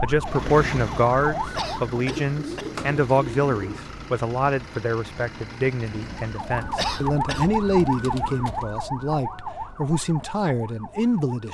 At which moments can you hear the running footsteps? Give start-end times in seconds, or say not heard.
not heard.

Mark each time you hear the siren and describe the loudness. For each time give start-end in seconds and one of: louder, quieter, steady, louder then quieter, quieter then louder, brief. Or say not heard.
0.0-1.9 brief
6.2-11.4 quieter.